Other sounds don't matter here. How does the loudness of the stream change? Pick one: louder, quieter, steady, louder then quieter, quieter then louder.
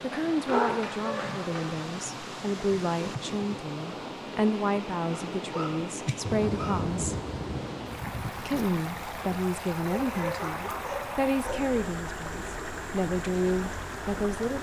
steady.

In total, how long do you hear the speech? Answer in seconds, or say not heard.
13 s.